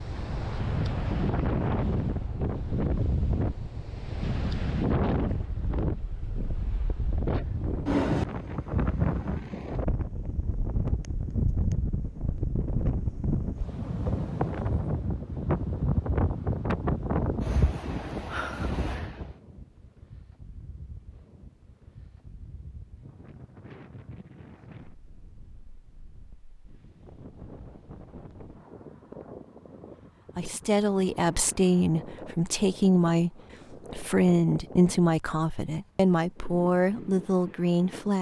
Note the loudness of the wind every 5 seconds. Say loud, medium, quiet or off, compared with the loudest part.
loud, loud, loud, loud, quiet, quiet, quiet, quiet.